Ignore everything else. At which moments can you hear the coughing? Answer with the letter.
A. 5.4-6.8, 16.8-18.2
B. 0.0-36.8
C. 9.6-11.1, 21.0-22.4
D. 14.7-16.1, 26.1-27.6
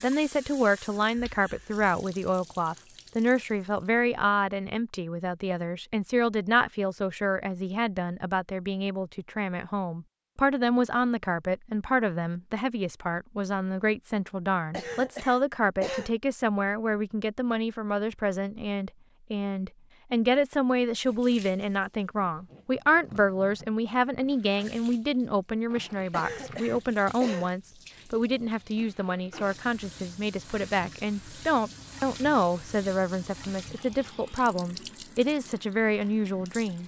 D.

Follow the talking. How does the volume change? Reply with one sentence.
The loudness of the talking stays about the same.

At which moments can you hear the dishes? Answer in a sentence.
The dishes can't be heard in this clip.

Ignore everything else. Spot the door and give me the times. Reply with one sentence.
The door can't be heard in this clip.